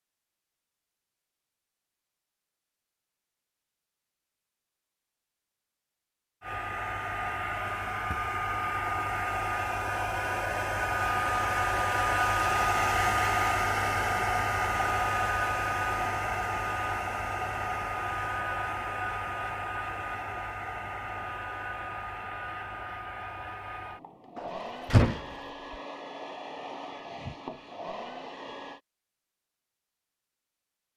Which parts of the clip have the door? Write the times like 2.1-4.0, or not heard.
24.4-25.2.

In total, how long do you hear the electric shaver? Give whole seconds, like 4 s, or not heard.
not heard.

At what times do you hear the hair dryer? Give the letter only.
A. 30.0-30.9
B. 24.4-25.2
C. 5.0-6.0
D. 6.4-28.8
D.